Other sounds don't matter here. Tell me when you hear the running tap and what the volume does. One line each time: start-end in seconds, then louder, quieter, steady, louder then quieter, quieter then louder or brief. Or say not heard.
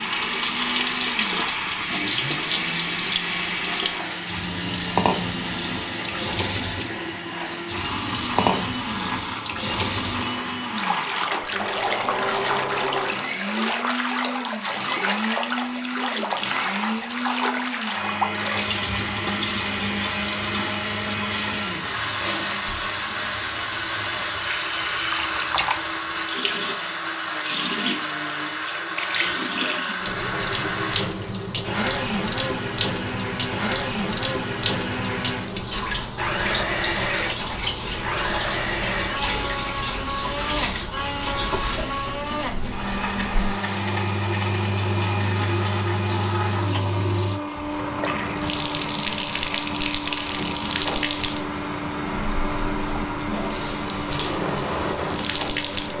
0.0-55.9 steady.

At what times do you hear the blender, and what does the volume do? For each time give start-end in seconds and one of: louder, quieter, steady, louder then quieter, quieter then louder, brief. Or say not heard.
0.0-55.9 steady.